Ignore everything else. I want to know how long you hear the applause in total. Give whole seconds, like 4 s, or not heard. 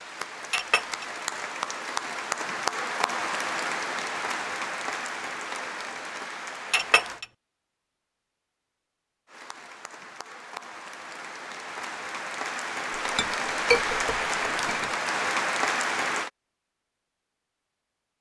14 s.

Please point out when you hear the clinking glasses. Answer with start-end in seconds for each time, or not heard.
0.5-1.1, 6.7-7.2, 12.9-14.9.